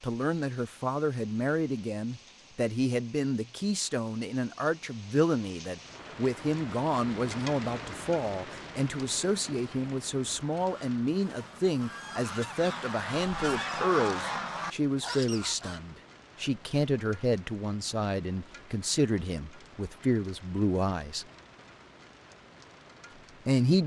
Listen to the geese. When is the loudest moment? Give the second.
14 s.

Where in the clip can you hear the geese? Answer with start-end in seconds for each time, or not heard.
10.3-15.8.